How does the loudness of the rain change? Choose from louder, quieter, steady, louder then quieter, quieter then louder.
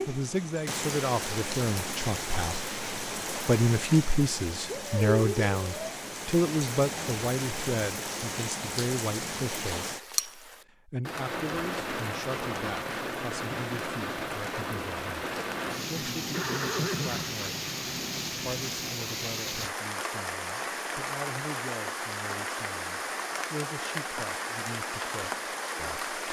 steady.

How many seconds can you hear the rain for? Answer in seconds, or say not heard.
26 s.